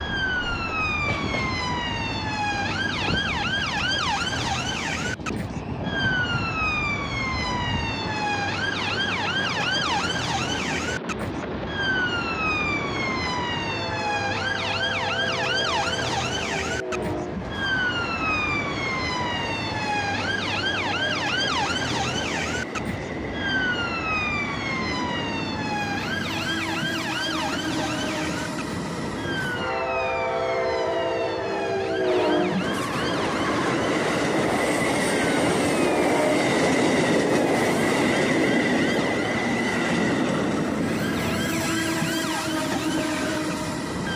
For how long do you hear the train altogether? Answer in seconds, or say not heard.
44 s.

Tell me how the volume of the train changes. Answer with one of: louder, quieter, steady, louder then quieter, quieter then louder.
louder.